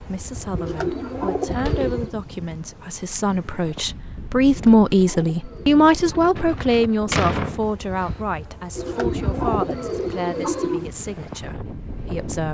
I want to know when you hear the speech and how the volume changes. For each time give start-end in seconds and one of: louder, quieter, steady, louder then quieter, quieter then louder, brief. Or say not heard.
0.0-12.4 louder then quieter.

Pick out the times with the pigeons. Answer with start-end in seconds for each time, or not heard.
0.6-2.1, 4.5-6.3, 8.8-10.9.